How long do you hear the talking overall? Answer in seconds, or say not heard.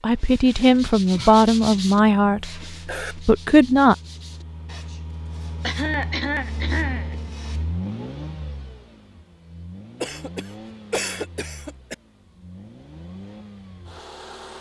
4 s.